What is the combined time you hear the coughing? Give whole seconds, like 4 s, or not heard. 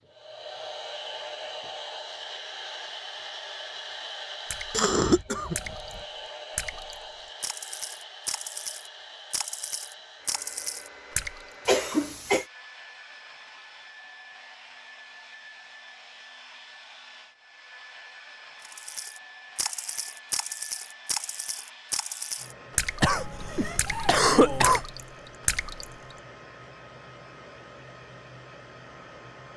4 s.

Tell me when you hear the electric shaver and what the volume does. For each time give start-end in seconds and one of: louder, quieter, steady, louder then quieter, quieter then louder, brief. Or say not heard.
not heard.